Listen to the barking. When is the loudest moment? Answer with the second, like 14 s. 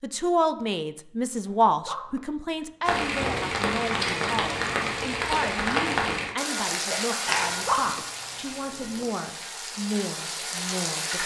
8 s.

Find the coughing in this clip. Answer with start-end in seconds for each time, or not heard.
6.9-8.0.